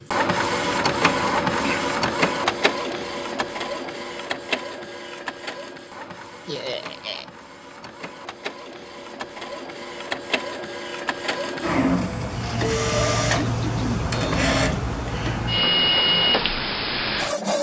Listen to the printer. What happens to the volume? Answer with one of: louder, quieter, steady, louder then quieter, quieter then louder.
quieter then louder.